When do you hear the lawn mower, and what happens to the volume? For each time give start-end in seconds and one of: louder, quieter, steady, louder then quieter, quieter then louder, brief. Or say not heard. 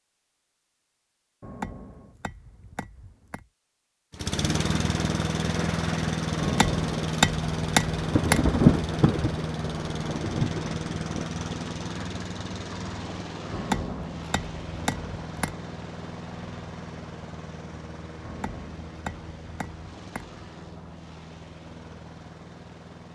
4.1-23.1 quieter.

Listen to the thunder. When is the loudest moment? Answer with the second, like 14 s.
9 s.